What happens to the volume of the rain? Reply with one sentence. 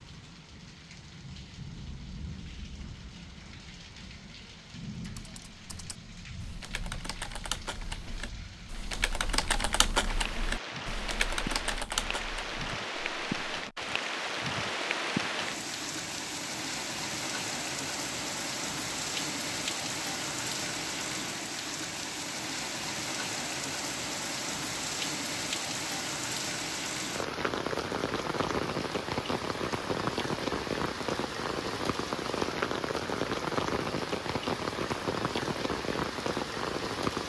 The volume of the rain goes up.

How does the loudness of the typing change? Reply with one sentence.
The volume of the typing goes up.